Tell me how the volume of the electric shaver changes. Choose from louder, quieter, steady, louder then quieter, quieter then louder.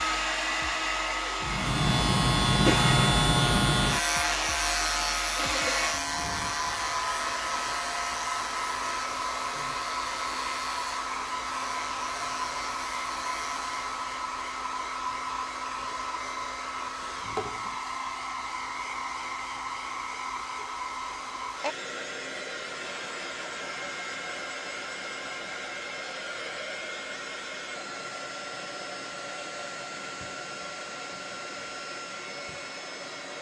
quieter.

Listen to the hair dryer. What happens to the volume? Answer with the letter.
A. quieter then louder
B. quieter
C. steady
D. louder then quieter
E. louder
B.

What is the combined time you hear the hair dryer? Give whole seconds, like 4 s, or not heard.
33 s.